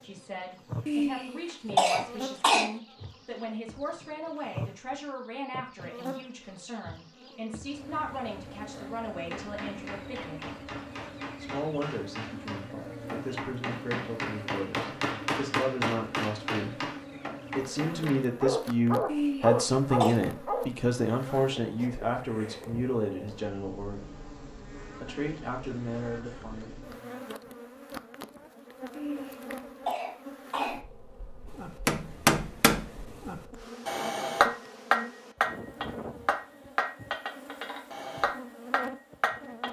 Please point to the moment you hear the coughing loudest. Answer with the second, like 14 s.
2 s.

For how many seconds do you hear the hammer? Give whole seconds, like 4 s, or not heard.
17 s.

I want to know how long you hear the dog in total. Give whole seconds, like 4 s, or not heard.
2 s.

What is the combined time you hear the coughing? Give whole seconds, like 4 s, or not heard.
5 s.